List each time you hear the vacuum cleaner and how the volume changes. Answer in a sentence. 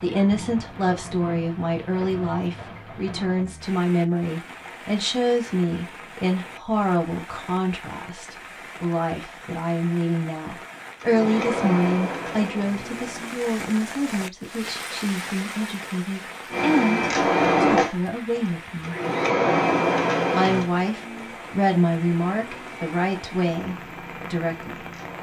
The vacuum cleaner can be heard briefly from 11.0 to 13.3 s; and from 16.5 to 25.1 s, getting quieter.